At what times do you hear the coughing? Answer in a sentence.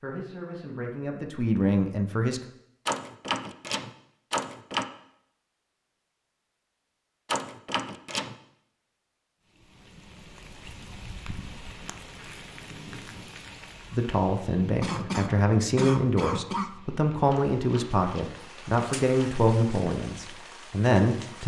You can hear the coughing from 14.8 to 16.7 s.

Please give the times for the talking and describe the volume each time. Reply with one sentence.
You can hear the talking briefly from 0.0 to 2.4 s; and from 13.9 to 21.4 s, at a steady volume.